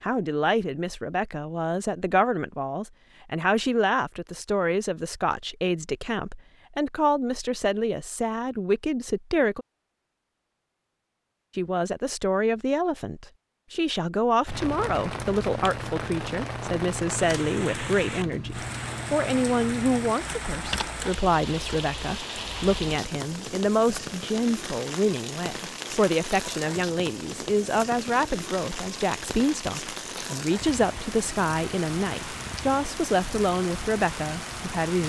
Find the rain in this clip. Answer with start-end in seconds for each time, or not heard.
14.4-35.0.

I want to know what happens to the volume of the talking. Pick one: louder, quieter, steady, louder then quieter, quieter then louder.
steady.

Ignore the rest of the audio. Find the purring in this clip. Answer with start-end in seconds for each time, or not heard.
not heard.